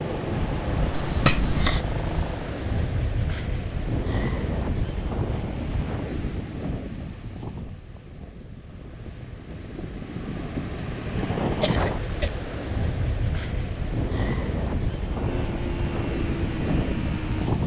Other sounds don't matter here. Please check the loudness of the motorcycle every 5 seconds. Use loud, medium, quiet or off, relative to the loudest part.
loud, off, off, loud.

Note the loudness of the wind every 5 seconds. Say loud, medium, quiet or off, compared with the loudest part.
loud, medium, loud, loud.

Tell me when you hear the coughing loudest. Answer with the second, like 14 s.
1 s.